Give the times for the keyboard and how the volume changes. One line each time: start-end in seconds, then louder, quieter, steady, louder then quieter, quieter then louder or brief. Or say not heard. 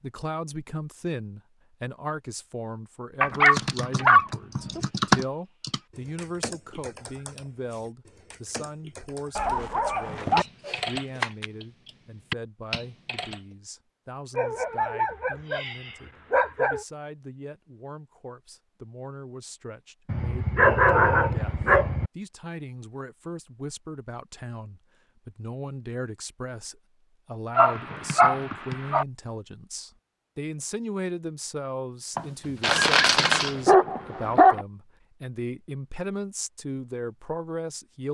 3.3-13.4 quieter then louder.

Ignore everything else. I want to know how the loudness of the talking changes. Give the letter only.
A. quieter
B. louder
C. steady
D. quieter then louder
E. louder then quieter
D.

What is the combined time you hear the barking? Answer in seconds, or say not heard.
11 s.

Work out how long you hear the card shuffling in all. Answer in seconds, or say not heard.
3 s.